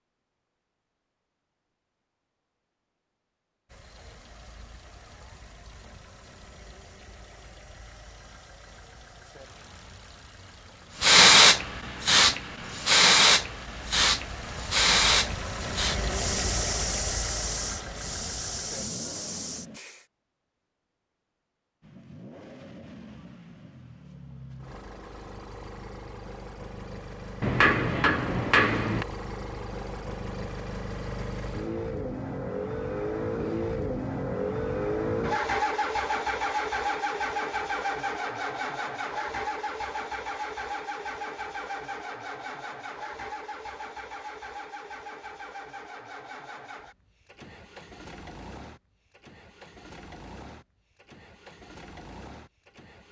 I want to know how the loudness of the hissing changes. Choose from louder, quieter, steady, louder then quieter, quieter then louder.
quieter.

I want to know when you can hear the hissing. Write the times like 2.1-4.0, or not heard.
11.0-20.1.